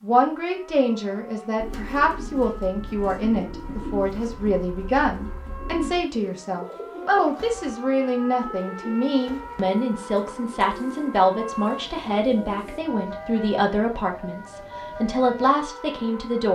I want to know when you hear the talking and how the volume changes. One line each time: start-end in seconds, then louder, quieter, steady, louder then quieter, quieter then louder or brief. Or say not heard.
0.0-16.5 steady.